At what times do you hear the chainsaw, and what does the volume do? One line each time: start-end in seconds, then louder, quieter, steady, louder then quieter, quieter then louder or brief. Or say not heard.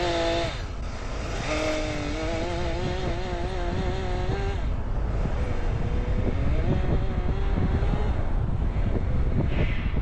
0.0-9.9 quieter.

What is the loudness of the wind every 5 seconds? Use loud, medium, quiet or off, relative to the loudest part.
medium, loud.